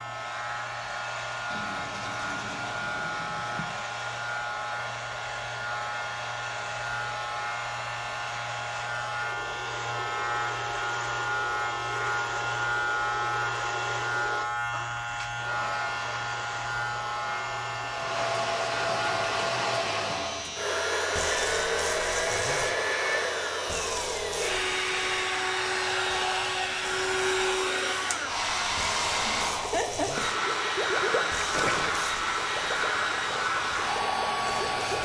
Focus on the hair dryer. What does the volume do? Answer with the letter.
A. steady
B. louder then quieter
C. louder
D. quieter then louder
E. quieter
C.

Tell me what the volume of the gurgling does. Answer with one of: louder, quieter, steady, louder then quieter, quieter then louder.
louder then quieter.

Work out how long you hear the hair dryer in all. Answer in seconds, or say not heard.
35 s.